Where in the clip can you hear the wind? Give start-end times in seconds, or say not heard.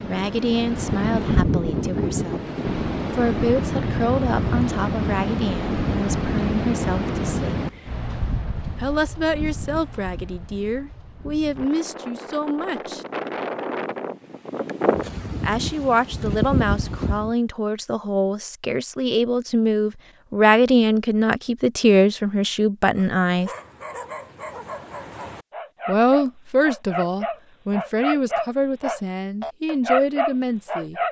0.0-17.4.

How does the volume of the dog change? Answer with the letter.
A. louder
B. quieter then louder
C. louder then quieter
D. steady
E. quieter
A.